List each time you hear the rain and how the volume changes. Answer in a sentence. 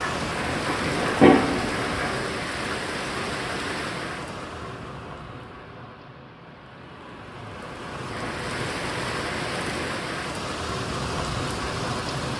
The rain can be heard from 0.0 to 12.3 s, getting quieter then louder.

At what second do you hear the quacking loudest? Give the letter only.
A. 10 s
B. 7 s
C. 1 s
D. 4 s
C.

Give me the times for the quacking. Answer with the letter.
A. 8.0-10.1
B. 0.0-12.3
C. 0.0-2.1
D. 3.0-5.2
C.